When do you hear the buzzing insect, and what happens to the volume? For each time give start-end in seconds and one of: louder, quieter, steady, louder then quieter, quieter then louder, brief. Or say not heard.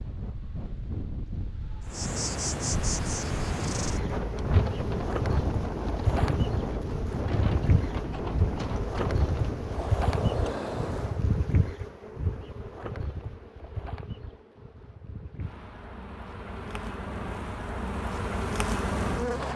1.9-19.5 quieter then louder.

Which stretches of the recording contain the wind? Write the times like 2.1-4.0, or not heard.
0.0-11.2.